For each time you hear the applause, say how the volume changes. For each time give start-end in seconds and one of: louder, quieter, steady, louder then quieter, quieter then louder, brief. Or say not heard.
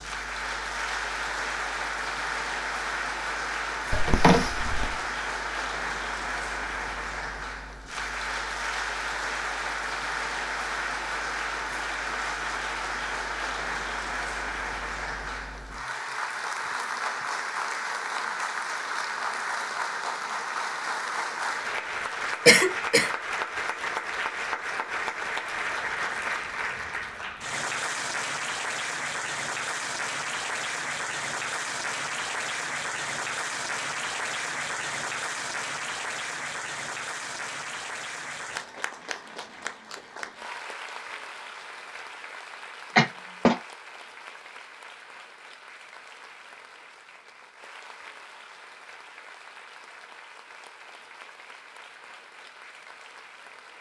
0.0-53.7 quieter.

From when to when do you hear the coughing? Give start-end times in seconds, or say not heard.
3.9-5.0, 22.4-23.1, 43.0-43.5.